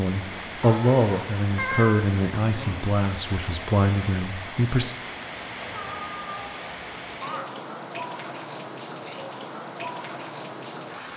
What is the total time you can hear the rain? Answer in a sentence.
You can hear the rain for 11 seconds altogether.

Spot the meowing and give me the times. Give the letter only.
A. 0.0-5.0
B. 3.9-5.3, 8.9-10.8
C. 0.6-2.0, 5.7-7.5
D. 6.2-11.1
C.